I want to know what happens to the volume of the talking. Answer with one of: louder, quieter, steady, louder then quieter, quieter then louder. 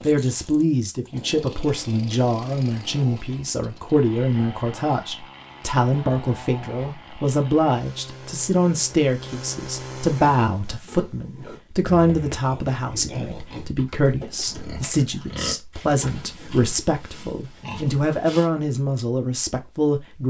steady.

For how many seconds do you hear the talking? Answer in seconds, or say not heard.
20 s.